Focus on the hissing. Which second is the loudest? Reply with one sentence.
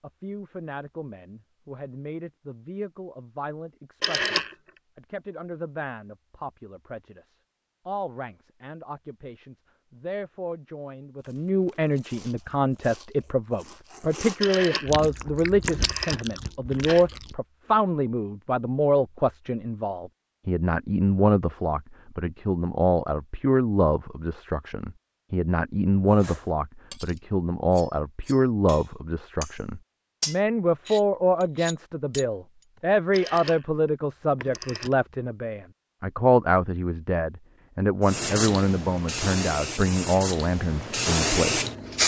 The loudest moment of the hissing is at 42 seconds.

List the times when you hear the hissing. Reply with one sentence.
The hissing can be heard from 38.0 to 42.0 s.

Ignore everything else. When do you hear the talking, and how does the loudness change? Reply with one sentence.
The talking can be heard from 0.0 to 42.0 s, getting louder.